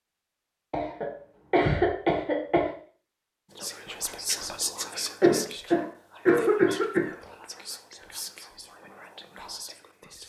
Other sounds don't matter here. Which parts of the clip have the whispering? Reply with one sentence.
You can hear the whispering from 3.5 to 10.2 s.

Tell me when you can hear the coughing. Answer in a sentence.
You can hear the coughing from 0.7 to 2.8 s and from 5.2 to 7.2 s.